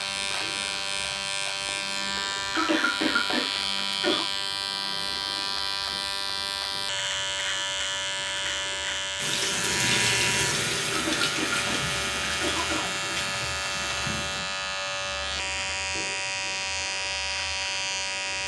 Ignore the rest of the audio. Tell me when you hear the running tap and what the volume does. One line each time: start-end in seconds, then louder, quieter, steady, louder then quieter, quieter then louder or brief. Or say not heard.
9.2-14.4 quieter.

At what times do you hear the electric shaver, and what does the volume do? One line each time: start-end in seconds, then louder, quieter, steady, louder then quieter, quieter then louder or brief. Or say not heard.
0.0-18.4 steady.